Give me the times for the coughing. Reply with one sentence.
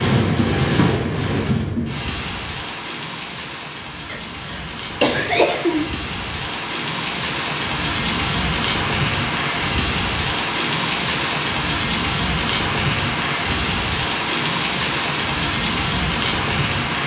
The coughing can be heard from 4.0 to 5.8 s.